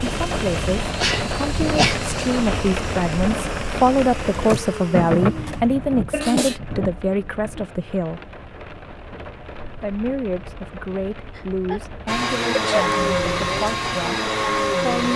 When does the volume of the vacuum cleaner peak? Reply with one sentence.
The volume of the vacuum cleaner peaks at 13 seconds.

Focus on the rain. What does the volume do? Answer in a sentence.
The volume of the rain goes down.